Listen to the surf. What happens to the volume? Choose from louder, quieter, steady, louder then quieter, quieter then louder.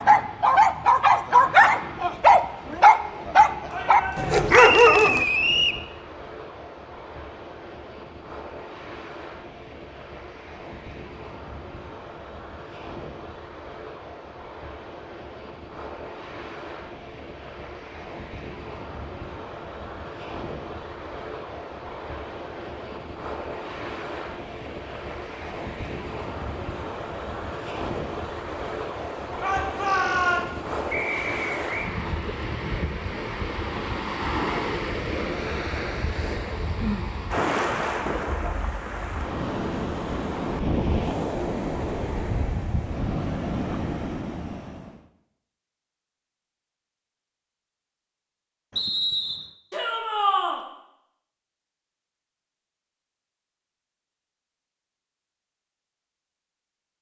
louder.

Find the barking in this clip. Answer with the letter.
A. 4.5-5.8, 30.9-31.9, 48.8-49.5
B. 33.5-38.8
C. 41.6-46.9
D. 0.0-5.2
D.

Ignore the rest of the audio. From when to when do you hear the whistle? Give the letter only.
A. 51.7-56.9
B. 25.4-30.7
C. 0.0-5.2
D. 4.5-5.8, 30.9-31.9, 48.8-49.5
D.